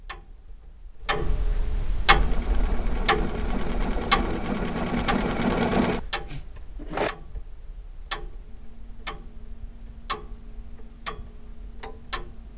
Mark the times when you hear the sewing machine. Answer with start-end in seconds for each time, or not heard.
2.1-7.1.